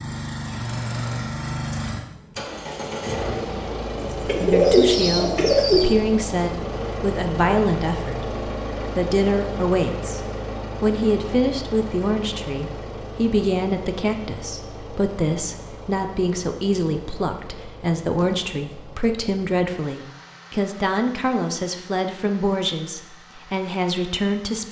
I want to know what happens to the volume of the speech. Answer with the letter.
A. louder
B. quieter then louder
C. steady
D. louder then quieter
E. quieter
C.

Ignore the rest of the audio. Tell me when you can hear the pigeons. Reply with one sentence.
You can hear the pigeons from 4.1 to 5.8 s and from 18.1 to 19.1 s.